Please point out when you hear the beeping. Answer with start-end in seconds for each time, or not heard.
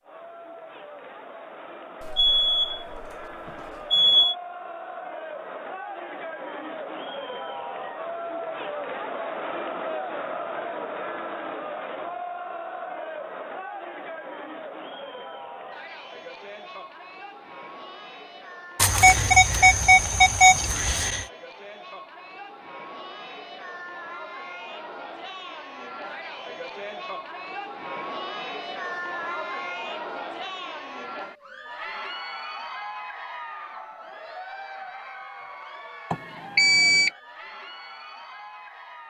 2.0-4.3, 18.8-21.2, 36.1-37.1.